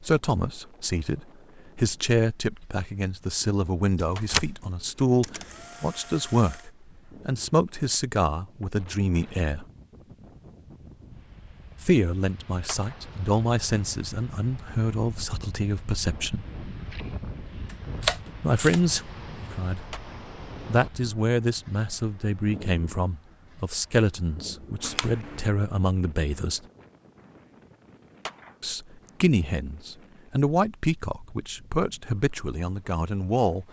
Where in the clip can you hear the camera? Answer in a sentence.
The camera can be heard from 4.0 to 6.7 s, from 17.6 to 18.8 s and from 24.8 to 25.4 s.